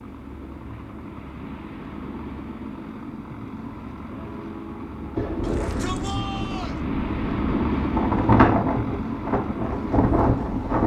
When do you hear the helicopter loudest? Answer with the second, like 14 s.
8 s.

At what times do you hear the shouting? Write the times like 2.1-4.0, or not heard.
5.4-6.8.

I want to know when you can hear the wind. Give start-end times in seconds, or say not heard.
5.2-10.8.